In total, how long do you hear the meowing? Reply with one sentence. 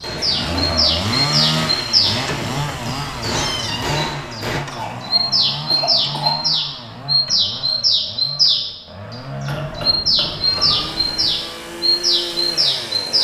You can hear the meowing for 4 seconds altogether.